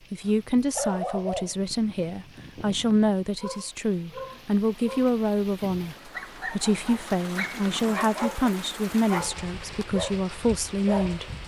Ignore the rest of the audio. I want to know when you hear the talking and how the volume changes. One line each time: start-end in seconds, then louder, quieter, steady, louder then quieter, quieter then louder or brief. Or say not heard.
0.1-11.3 steady.